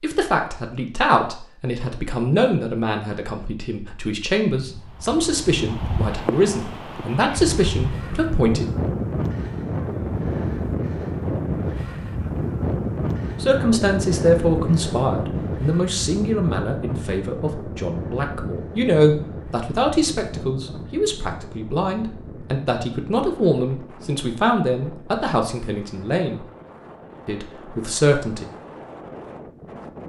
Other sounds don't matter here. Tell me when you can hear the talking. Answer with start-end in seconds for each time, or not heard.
0.0-8.7, 13.4-26.4, 27.2-28.4.